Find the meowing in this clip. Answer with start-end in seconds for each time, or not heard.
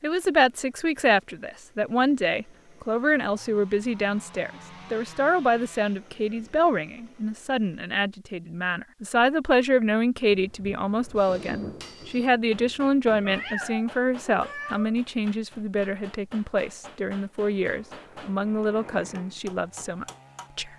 13.2-14.9.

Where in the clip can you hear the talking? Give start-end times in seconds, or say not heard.
0.0-20.7.